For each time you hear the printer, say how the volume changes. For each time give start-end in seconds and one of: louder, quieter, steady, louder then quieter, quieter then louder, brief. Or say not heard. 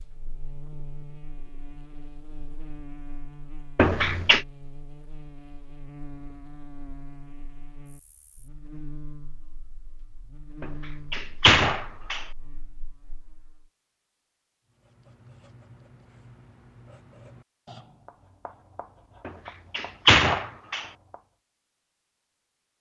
not heard.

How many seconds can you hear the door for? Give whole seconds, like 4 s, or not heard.
4 s.